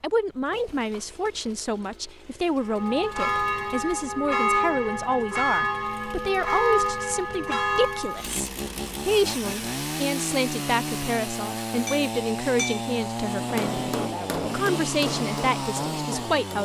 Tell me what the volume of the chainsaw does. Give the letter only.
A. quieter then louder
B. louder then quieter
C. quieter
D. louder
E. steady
D.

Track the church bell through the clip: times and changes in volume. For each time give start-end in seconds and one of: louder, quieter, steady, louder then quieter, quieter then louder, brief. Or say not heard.
2.6-8.3 steady.